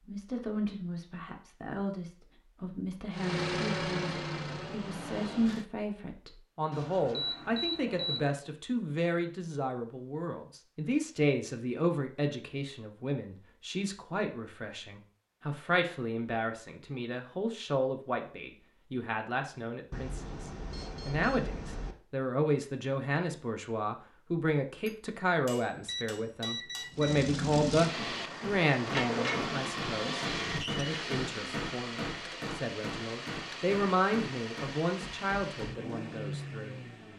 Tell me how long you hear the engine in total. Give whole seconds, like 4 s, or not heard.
13 s.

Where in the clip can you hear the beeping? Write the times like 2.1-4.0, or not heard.
6.7-8.3, 19.9-21.9, 25.9-27.2.